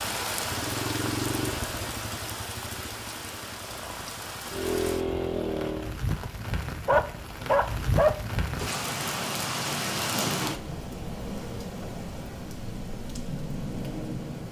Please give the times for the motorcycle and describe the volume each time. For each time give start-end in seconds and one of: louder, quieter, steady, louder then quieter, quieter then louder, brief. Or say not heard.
0.2-6.0 quieter then louder.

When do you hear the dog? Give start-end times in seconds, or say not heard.
6.8-8.2.